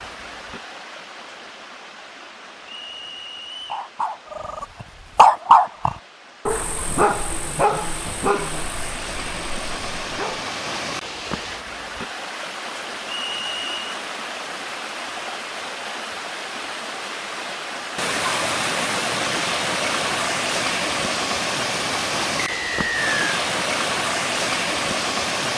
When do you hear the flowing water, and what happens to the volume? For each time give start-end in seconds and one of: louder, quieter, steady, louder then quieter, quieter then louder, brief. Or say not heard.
0.0-25.5 louder.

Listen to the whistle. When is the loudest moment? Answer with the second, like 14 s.
23 s.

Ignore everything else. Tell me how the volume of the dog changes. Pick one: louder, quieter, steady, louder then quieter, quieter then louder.
quieter.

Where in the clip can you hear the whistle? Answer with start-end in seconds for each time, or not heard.
2.6-3.9, 13.1-13.8, 22.4-23.1.